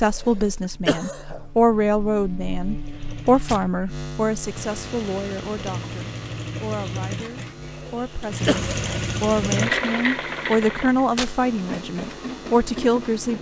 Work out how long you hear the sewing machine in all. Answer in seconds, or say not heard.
11 s.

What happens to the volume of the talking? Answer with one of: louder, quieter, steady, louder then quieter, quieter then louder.
quieter then louder.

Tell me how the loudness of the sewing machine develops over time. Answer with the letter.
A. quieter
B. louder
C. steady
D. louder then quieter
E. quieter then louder
D.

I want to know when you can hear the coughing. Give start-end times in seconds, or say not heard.
0.1-1.4, 7.8-8.9.